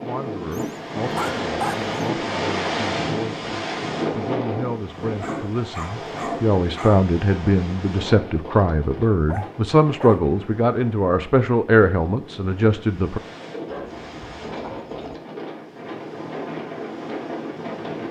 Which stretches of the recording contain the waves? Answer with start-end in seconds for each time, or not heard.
0.0-18.0.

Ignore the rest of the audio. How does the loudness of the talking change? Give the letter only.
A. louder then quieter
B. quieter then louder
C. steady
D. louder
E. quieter
D.